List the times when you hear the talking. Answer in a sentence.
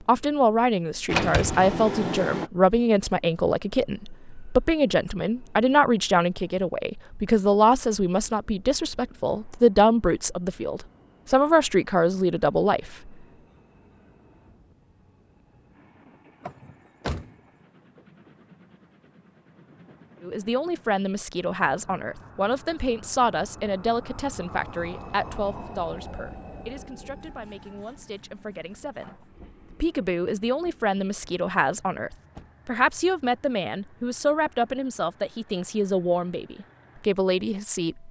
You can hear the talking from 0.1 to 13.2 s and from 20.2 to 38.0 s.